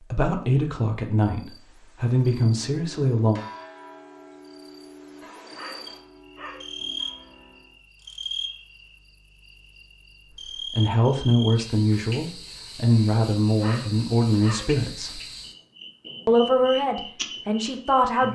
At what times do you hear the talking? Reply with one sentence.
The talking can be heard from 0.1 to 3.4 s, from 10.7 to 15.2 s and from 16.2 to 18.2 s.